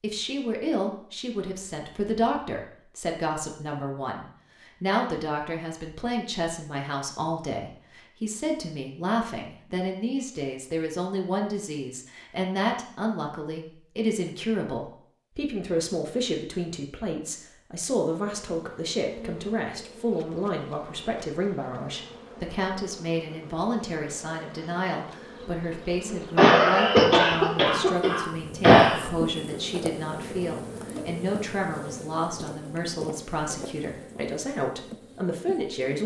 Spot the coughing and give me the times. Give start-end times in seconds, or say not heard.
26.4-29.1.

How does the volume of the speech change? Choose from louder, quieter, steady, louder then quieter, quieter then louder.
steady.